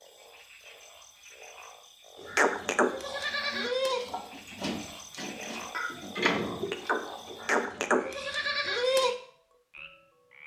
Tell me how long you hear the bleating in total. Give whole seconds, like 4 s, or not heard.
7 s.